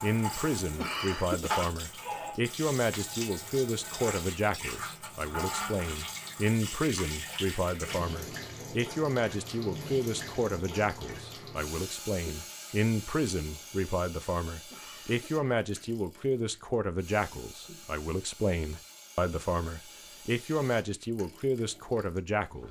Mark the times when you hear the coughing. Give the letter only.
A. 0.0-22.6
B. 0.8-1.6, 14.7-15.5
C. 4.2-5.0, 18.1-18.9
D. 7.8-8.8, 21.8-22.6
B.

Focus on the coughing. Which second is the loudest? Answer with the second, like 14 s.
1 s.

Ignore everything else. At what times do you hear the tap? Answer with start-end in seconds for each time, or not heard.
0.0-22.6.